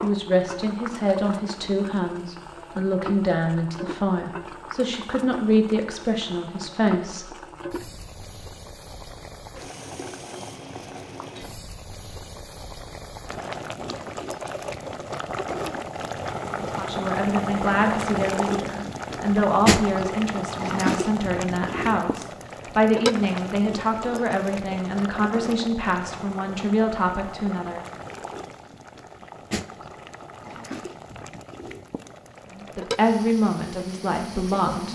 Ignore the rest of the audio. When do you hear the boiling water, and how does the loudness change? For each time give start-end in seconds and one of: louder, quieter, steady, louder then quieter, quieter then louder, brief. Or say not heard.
0.0-34.8 louder then quieter.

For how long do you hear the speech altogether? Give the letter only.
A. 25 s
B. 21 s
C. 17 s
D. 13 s
B.